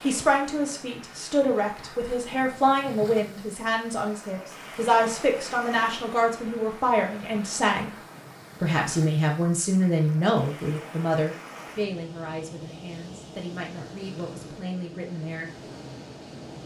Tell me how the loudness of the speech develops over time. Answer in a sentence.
The volume of the speech goes down.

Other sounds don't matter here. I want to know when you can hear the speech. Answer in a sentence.
You can hear the speech from 0.0 to 7.9 s and from 8.6 to 15.7 s.